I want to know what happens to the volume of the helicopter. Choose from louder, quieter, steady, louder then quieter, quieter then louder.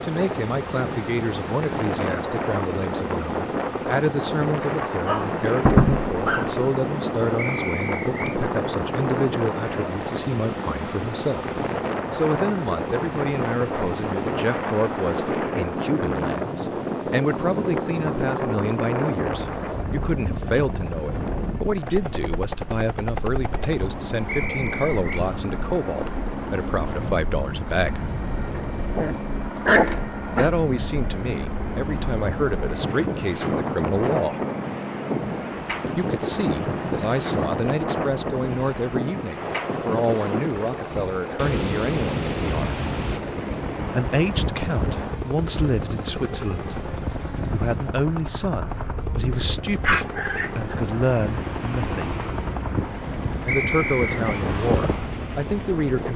steady.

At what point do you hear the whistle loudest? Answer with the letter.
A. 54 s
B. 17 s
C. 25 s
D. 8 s
A.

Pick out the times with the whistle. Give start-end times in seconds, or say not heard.
7.3-8.4, 24.2-25.2, 53.5-54.2.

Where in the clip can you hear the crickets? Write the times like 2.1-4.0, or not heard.
not heard.